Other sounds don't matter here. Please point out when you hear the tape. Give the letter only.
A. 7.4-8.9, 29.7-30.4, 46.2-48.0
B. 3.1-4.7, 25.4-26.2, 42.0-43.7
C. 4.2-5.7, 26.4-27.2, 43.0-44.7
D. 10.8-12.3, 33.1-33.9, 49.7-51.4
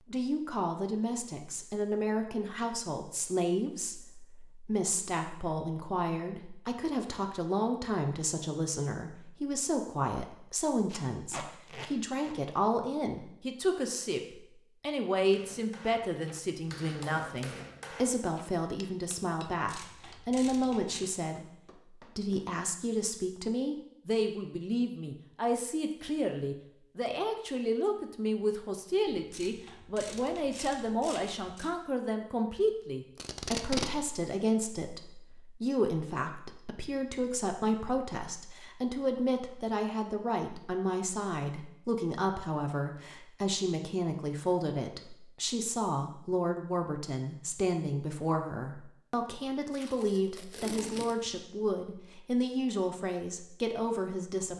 D.